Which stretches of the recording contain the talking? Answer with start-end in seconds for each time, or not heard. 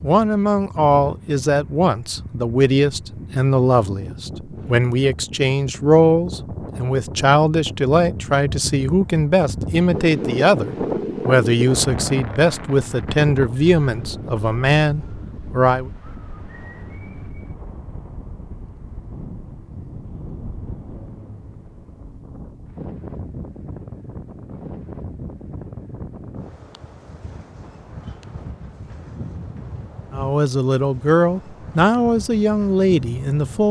0.0-15.9, 30.1-33.6.